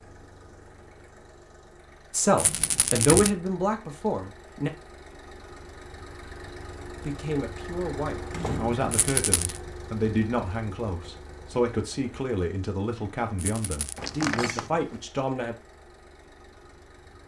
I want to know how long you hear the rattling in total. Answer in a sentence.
The rattling can be heard for 2 seconds in total.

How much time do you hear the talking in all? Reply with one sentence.
You can hear the talking for 11 seconds altogether.